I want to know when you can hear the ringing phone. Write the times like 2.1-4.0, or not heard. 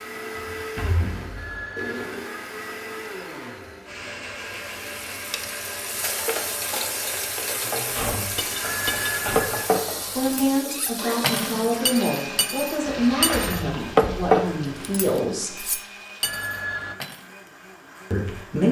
1.4-2.1, 8.6-9.4, 16.2-17.0.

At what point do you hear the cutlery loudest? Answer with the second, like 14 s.
14 s.